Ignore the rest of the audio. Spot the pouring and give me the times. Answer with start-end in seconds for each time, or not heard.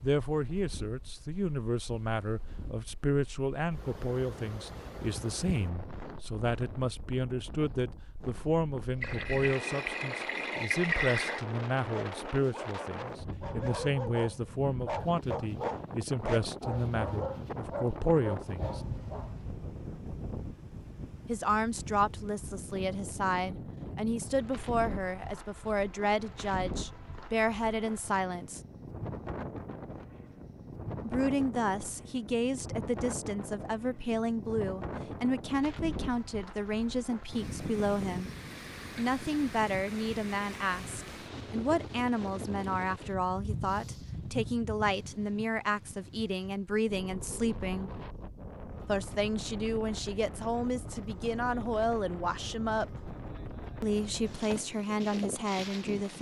9.0-11.4.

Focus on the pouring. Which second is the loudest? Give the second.
11 s.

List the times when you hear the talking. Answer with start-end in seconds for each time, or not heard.
0.0-18.8, 21.2-28.6, 31.0-38.3, 39.0-47.9, 48.9-53.0, 53.8-56.1.